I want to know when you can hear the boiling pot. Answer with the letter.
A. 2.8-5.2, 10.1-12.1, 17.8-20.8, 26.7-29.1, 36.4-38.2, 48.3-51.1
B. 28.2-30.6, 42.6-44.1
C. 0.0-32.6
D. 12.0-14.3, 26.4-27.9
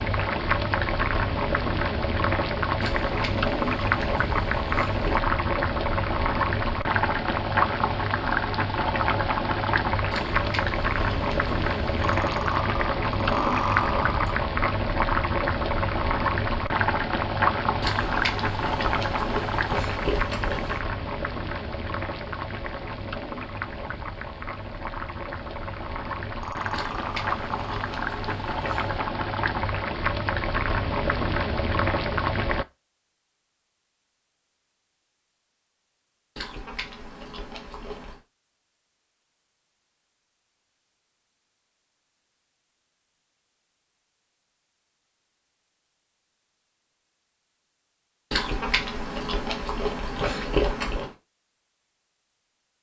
C.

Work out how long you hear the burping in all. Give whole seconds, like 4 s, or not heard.
4 s.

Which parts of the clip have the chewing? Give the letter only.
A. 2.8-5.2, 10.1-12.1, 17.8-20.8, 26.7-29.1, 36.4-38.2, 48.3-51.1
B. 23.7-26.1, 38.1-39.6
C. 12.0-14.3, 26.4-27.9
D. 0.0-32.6
A.